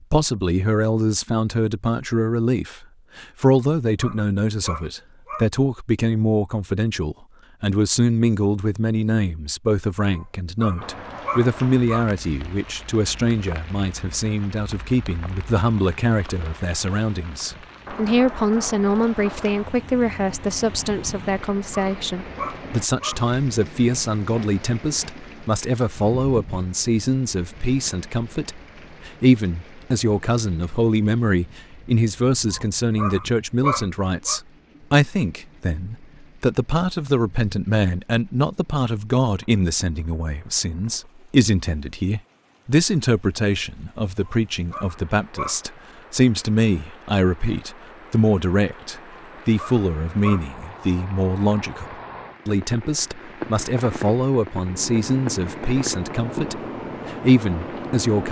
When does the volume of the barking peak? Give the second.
34 s.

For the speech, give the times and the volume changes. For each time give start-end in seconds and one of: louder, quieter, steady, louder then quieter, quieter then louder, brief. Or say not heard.
0.1-58.2 steady.